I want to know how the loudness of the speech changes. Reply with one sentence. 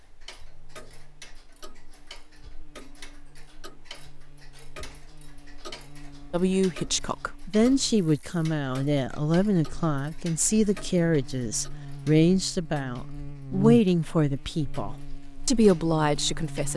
The volume of the speech stays about the same.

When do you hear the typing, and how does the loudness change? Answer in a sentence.
The typing can't be heard in this clip.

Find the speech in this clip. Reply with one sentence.
You can hear the speech from 6.3 to 16.7 s.